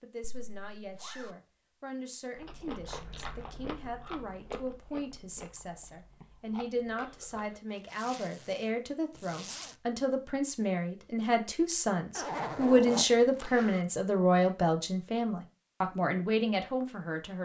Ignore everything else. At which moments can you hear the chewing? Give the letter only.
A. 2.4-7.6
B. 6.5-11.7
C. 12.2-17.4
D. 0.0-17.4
A.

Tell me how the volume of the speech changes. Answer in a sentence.
The loudness of the speech goes up.